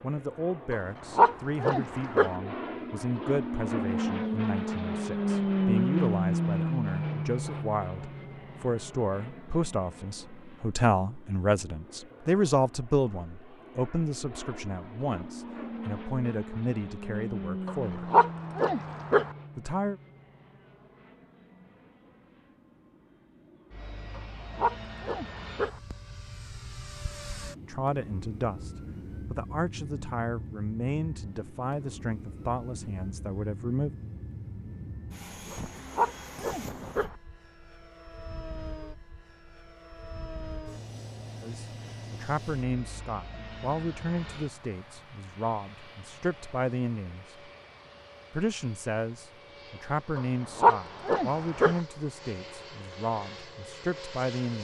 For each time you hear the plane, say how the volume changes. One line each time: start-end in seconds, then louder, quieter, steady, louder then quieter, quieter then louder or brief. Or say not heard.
0.0-54.5 quieter.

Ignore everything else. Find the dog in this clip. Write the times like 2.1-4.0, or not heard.
0.7-2.4, 17.6-19.3, 24.1-25.8, 35.5-37.1, 50.1-51.8.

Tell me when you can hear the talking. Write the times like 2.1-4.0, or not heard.
0.0-18.1, 19.6-20.0, 27.6-34.0, 41.4-47.5, 48.3-54.5.